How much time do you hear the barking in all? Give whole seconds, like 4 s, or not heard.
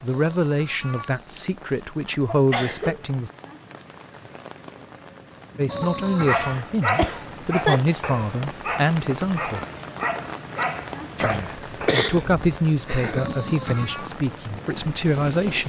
6 s.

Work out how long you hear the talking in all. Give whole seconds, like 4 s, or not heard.
12 s.